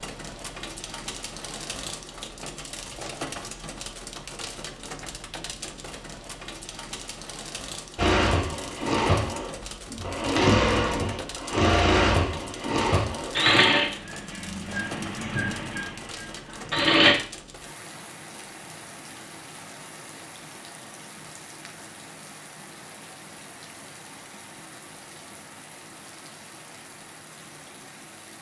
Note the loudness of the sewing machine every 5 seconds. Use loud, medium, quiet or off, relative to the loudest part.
off, loud, loud, loud, off, off.